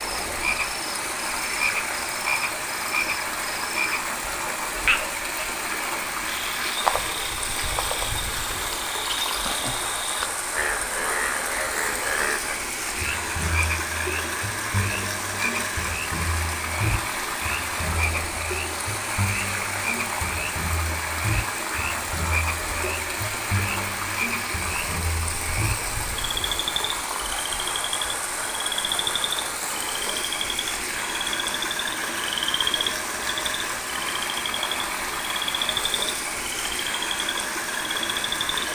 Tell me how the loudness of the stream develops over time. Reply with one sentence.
The volume of the stream stays about the same.